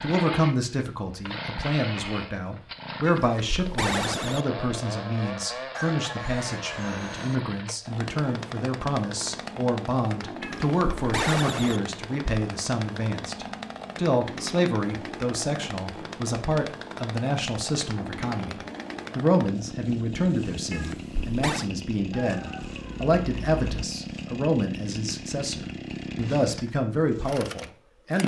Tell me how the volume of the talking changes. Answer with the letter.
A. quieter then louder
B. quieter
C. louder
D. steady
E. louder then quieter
D.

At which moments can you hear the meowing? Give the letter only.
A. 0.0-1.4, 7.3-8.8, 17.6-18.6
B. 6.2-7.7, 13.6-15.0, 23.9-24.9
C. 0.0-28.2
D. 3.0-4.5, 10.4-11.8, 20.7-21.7
D.